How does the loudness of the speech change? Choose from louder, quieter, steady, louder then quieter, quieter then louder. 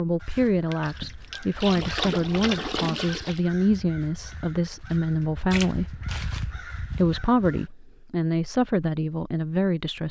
steady.